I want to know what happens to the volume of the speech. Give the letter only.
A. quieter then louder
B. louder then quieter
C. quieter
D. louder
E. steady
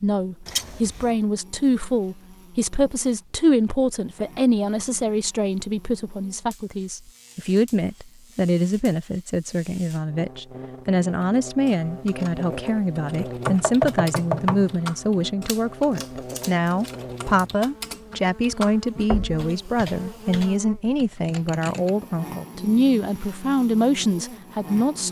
E.